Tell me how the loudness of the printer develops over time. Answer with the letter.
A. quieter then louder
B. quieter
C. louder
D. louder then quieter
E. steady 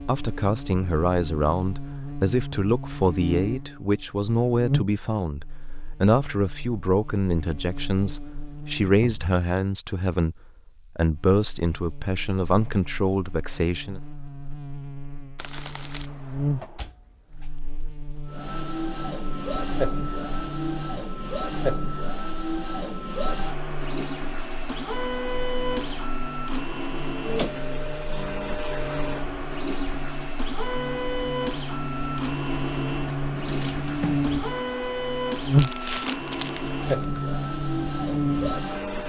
E.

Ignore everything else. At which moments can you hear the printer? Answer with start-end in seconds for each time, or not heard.
18.2-39.0.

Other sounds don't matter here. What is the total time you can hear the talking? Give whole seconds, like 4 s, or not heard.
14 s.